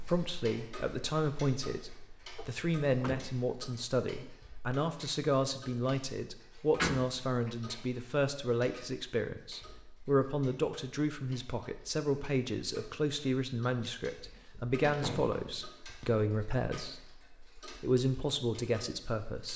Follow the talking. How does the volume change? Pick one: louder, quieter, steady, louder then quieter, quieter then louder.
steady.